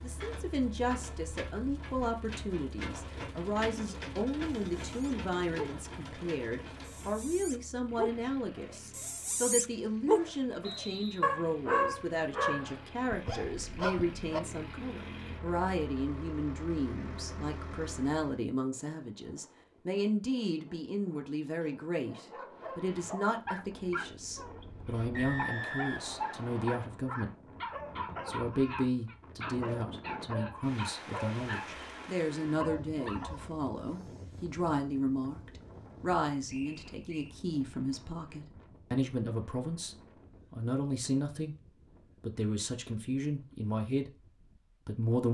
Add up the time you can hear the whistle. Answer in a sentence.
You can hear the whistle for 3 seconds altogether.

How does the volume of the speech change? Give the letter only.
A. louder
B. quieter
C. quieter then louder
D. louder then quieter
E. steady
E.